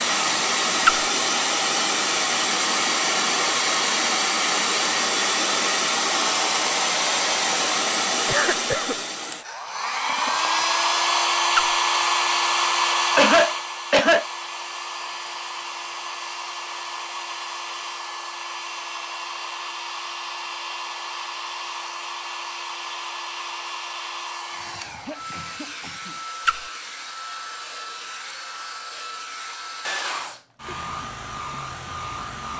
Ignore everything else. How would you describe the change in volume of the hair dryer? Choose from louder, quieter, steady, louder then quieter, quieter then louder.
quieter.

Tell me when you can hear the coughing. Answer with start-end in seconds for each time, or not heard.
8.2-8.9, 13.2-14.2, 24.5-26.2.